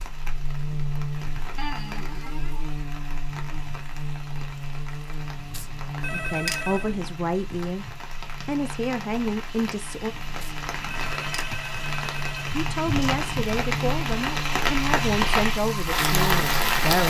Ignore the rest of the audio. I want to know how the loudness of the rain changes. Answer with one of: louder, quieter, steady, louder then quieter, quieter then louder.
louder.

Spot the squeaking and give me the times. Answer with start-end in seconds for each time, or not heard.
1.6-2.6.